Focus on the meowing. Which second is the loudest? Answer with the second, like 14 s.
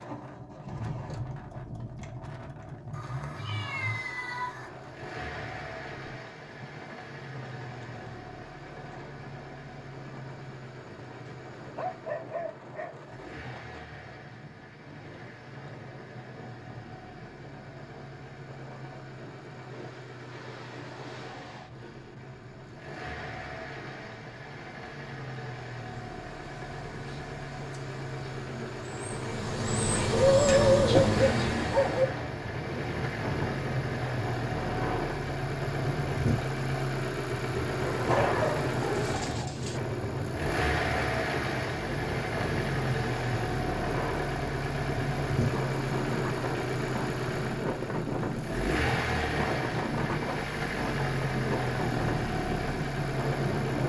4 s.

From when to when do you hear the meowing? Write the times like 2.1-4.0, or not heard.
2.9-4.7.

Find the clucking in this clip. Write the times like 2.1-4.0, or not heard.
not heard.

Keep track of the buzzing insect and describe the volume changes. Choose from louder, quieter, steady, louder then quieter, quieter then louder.
louder.